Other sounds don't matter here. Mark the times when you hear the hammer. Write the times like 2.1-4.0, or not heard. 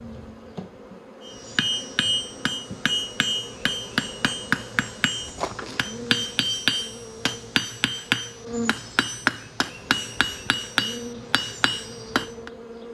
1.2-12.5.